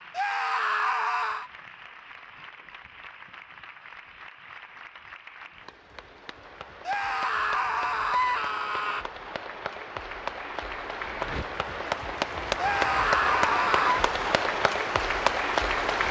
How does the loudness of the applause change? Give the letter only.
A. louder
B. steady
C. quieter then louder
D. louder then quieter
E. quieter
A.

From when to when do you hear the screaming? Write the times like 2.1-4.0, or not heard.
0.1-1.5, 6.8-9.1, 12.6-14.0.